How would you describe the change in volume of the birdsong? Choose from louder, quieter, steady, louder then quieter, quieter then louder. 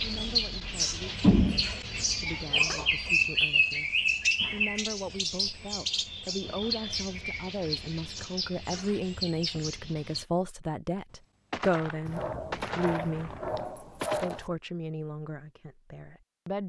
quieter.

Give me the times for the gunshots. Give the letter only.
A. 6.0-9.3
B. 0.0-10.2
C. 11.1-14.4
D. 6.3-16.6
C.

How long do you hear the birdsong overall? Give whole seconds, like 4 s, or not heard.
10 s.